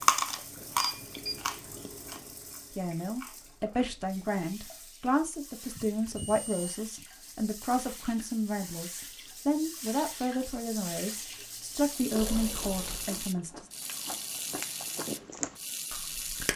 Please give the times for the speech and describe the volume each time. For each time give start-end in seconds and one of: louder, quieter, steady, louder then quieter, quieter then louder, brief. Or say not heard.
2.8-13.7 steady.